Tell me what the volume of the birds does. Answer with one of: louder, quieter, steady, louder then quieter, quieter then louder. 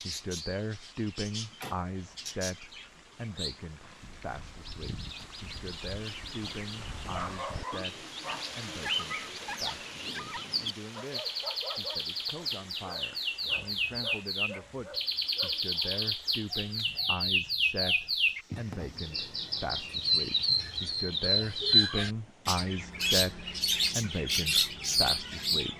louder.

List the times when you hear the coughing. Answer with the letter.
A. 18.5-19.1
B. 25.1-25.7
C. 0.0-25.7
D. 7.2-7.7
A.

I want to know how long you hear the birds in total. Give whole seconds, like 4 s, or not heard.
26 s.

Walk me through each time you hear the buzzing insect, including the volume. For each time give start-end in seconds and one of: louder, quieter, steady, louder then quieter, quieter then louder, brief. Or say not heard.
not heard.